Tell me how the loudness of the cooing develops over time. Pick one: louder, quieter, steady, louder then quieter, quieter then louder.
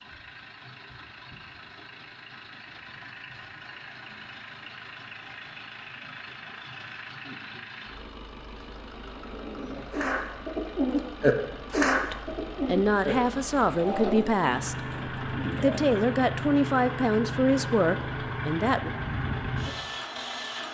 louder then quieter.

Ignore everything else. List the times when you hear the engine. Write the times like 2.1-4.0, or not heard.
0.0-20.6.